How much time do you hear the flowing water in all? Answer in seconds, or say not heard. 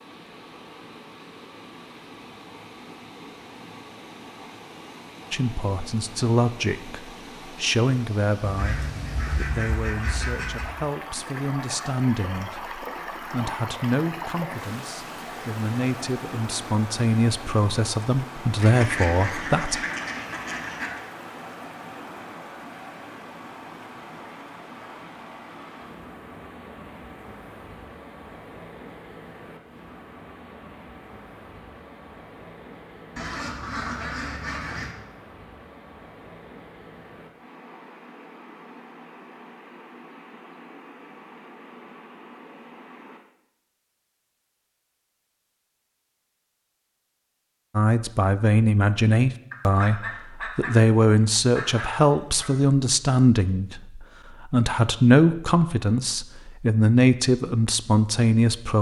43 s.